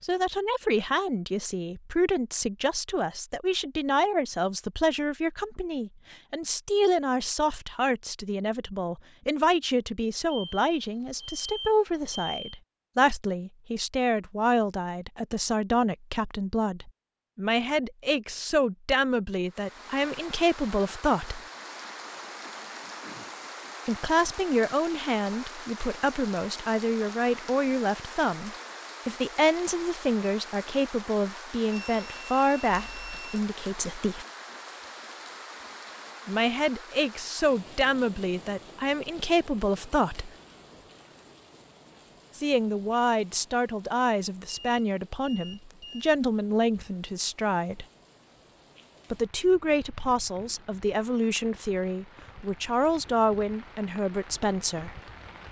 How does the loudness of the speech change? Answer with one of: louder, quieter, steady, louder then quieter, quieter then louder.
steady.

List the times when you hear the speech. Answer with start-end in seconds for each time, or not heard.
0.0-21.4, 23.9-34.2, 36.2-40.3, 42.4-47.9, 49.1-55.0.